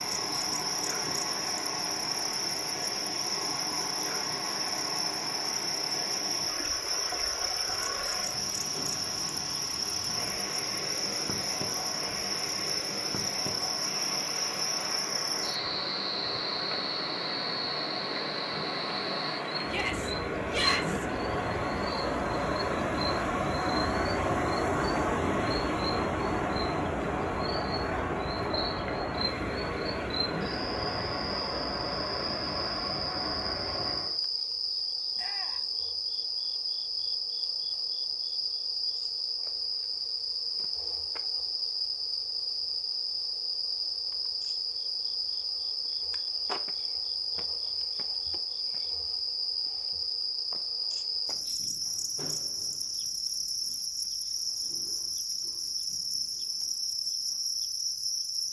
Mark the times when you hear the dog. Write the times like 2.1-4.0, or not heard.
not heard.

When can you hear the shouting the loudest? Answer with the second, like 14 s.
21 s.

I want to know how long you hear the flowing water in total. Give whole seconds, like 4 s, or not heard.
34 s.